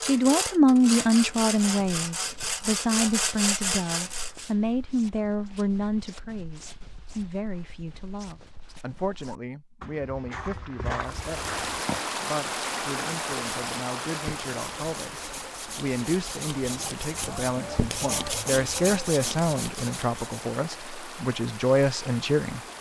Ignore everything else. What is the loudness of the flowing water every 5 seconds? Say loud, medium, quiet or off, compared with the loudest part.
off, off, loud, medium, medium.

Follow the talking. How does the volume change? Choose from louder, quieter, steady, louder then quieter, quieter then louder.
quieter then louder.